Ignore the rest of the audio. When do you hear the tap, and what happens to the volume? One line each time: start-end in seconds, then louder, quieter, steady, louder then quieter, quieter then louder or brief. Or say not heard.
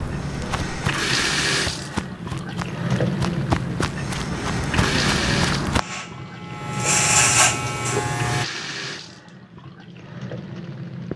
0.0-11.1 quieter.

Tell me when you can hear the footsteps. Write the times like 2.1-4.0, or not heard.
0.0-5.8.